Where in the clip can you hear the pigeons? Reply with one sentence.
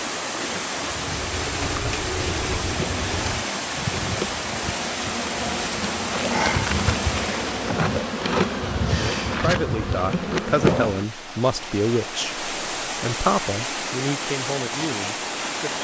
The pigeons can be heard from 1.1 to 3.5 s.